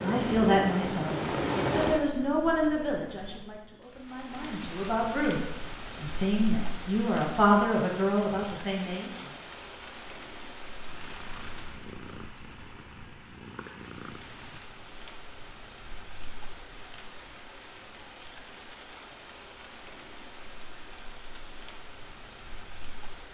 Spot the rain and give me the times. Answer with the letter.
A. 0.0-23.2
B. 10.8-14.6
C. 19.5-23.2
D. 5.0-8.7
A.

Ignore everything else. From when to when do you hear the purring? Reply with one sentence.
You can hear the purring from 10.8 to 14.6 s.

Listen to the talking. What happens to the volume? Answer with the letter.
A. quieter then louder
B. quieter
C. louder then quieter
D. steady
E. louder
A.